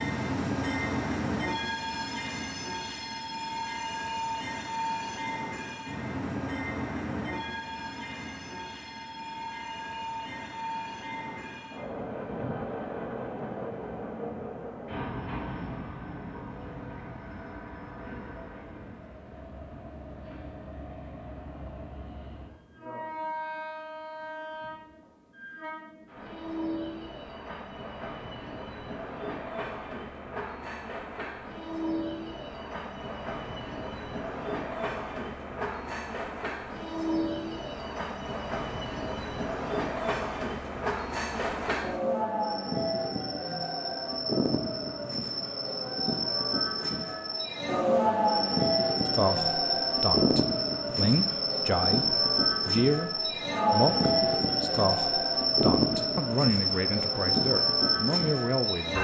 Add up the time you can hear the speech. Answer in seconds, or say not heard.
10 s.